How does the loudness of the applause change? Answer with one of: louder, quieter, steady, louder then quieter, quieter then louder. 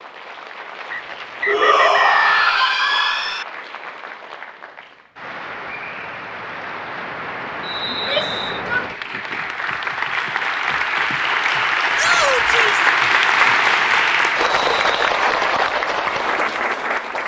louder.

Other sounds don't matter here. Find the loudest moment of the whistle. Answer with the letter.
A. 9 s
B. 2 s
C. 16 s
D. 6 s
B.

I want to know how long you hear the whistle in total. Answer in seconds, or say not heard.
3 s.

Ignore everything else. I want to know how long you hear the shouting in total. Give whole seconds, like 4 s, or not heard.
4 s.